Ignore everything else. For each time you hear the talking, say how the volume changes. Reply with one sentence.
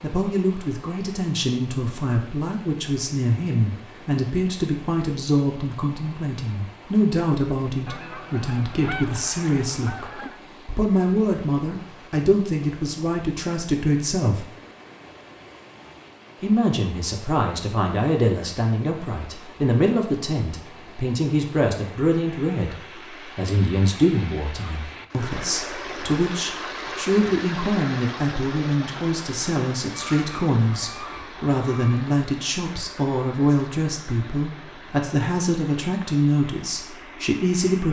The talking can be heard from 0.0 to 14.4 s, at a steady volume; and from 16.4 to 37.8 s, at a steady volume.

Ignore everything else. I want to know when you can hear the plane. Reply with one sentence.
You can't hear the plane here.